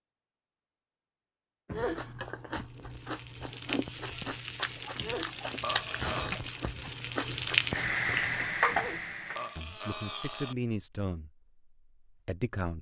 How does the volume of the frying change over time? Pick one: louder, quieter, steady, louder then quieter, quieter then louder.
louder.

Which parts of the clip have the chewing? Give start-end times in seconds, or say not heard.
1.9-8.7.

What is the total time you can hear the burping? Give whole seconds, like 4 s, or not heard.
4 s.